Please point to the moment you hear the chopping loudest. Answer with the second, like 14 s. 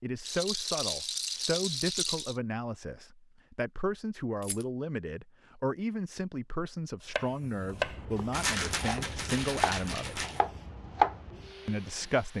11 s.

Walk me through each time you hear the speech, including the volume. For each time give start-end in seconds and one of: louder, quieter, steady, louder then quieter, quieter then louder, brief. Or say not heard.
0.0-10.2 steady
11.7-12.3 brief.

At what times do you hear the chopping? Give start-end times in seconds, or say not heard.
7.2-11.8.